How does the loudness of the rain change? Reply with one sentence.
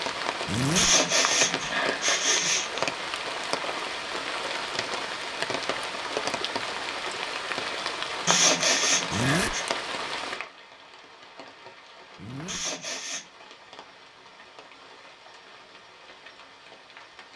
The loudness of the rain goes down.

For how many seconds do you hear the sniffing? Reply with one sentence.
The sniffing can be heard for 4 seconds in total.